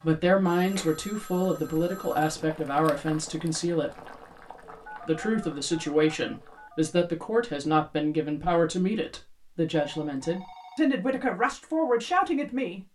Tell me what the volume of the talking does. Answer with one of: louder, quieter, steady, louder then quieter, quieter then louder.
steady.